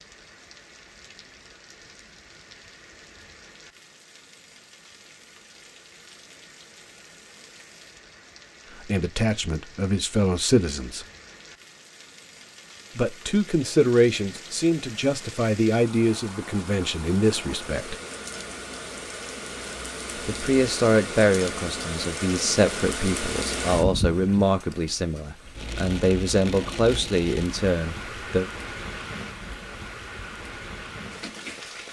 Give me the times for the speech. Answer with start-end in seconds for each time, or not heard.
8.8-11.1, 12.9-17.9, 20.1-28.4.